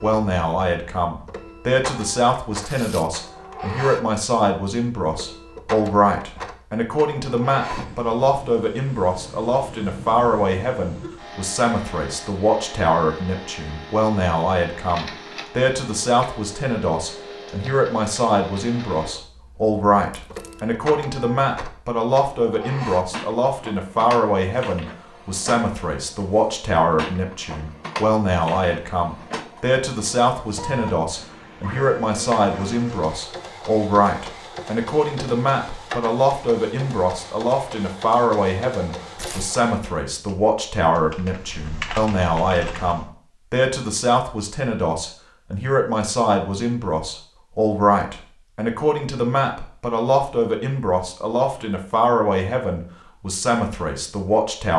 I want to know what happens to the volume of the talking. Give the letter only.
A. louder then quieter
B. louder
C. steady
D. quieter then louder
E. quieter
C.